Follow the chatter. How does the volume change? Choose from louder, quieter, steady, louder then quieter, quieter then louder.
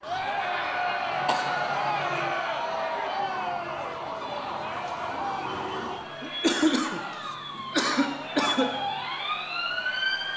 quieter.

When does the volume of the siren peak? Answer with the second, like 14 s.
10 s.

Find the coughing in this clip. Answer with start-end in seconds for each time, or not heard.
1.1-2.4, 6.2-8.8.